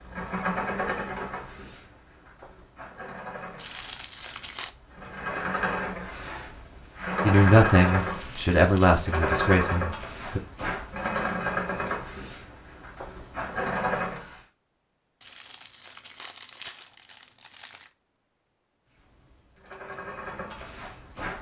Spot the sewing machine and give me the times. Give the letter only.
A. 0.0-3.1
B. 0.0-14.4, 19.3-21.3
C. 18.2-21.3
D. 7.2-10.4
B.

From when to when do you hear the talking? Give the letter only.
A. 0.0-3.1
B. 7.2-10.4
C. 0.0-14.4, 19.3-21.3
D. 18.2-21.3
B.